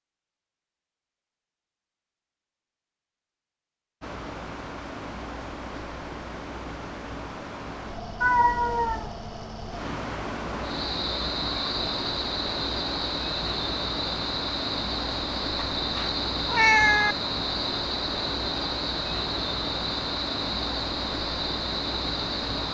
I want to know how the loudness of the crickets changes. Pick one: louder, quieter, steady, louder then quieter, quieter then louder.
steady.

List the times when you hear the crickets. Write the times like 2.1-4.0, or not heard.
10.6-22.6.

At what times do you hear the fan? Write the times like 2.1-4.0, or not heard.
4.0-22.6.